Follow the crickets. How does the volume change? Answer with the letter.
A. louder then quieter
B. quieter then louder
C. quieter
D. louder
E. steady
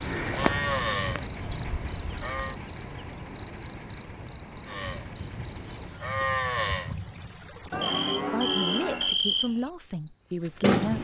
B.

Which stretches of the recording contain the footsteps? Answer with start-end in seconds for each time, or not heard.
not heard.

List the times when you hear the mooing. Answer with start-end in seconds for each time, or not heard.
0.1-2.5, 4.7-9.2.